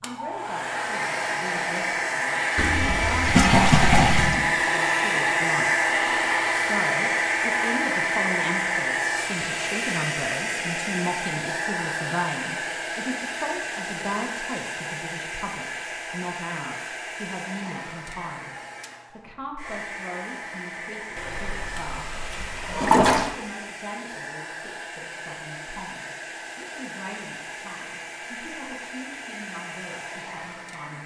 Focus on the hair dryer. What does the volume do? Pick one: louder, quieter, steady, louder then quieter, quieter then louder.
quieter.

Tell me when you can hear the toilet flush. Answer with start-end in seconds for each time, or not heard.
2.5-4.4, 21.1-23.3.